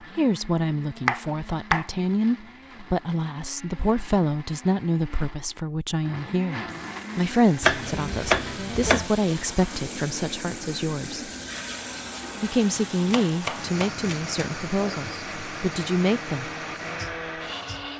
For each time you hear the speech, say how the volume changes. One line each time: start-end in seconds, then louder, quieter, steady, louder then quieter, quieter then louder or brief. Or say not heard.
0.1-11.3 steady
12.4-16.5 quieter then louder.